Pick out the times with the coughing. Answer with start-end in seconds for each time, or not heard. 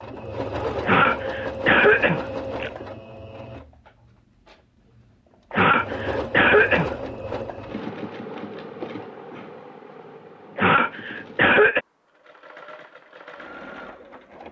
0.8-2.7, 5.5-7.0, 10.6-11.8.